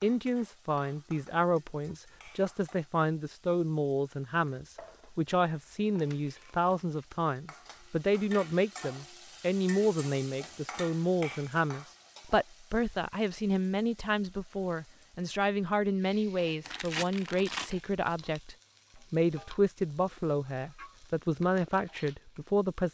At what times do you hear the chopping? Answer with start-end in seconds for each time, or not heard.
not heard.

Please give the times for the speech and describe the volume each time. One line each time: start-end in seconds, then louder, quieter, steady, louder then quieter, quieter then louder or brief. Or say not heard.
0.0-22.8 steady.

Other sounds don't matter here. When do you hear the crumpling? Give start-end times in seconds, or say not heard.
5.9-7.0, 16.6-17.7.